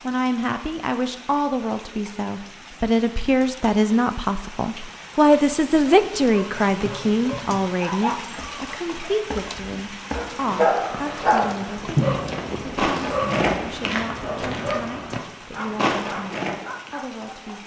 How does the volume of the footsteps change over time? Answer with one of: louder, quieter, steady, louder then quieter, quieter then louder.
louder.